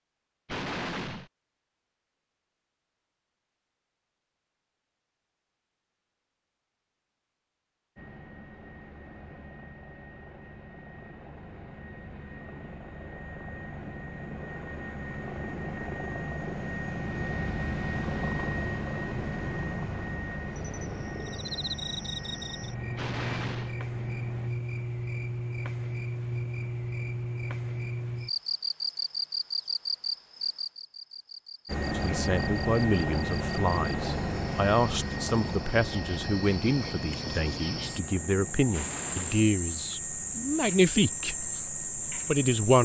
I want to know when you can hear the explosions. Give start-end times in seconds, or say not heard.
0.5-1.3, 22.9-23.8, 38.7-39.5.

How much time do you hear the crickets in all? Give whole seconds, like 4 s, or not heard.
22 s.